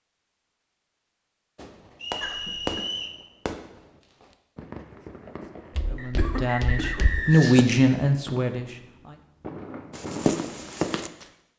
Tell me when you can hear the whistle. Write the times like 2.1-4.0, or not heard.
2.0-3.2, 6.0-7.5.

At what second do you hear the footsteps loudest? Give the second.
10 s.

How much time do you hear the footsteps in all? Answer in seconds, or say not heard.
3 s.